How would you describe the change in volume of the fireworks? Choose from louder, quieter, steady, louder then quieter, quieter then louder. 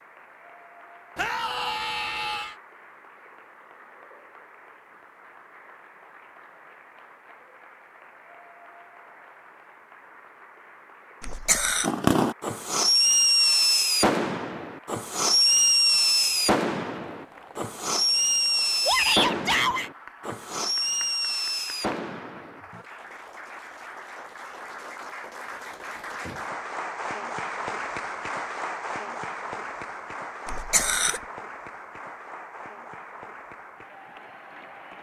quieter.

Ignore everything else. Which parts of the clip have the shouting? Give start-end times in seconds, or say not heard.
1.1-2.5, 18.9-19.9.